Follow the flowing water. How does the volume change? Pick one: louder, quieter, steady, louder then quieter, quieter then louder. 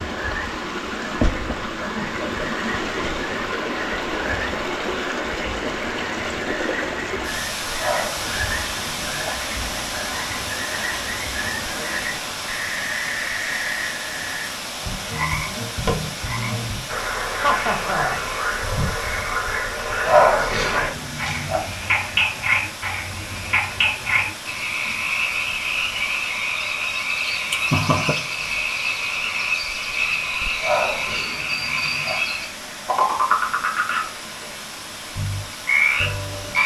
quieter.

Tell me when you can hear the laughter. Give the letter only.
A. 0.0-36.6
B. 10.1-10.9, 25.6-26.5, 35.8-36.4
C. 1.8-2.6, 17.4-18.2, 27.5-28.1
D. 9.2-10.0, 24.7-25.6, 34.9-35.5
C.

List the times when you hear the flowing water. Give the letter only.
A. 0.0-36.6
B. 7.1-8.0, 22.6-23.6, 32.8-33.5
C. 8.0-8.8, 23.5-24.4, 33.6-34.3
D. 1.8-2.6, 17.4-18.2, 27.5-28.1
A.